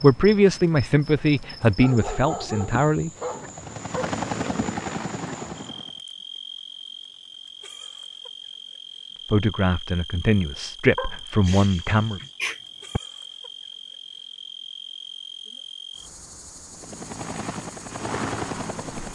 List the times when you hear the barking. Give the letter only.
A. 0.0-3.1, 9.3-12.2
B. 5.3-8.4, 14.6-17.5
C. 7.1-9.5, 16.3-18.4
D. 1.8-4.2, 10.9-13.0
D.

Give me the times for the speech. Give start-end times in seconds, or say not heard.
0.0-3.1, 9.3-12.2.